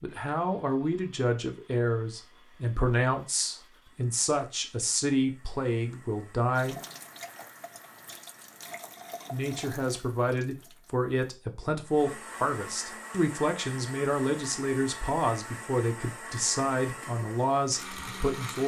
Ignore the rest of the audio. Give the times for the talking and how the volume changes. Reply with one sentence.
You can hear the talking from 0.0 to 6.8 s, at a steady volume; and from 9.3 to 18.6 s, at a steady volume.